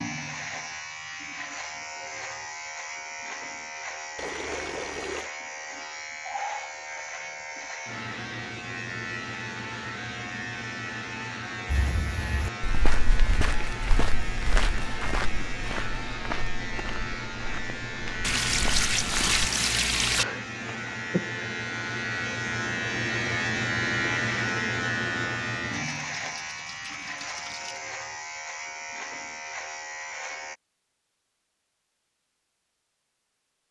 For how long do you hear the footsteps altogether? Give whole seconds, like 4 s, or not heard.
8 s.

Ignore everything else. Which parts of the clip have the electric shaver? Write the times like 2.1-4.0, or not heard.
0.0-30.6.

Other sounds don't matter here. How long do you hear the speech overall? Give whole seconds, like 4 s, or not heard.
not heard.